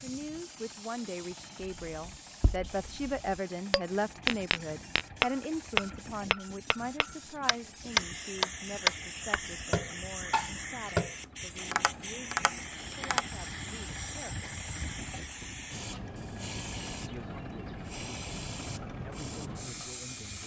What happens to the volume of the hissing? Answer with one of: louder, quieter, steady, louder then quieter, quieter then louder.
louder.